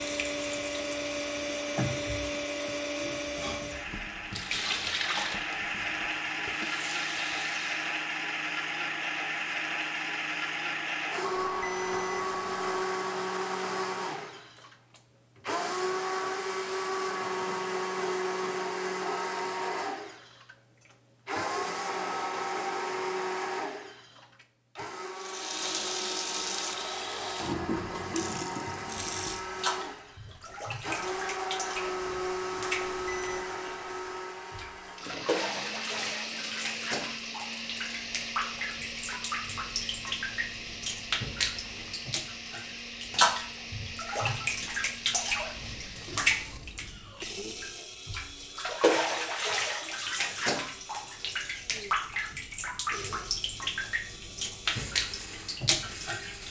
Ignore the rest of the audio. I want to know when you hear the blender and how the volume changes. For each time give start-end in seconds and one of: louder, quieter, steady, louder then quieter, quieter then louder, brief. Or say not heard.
0.0-56.4 quieter.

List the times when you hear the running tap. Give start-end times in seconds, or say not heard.
0.0-8.0, 25.1-56.4.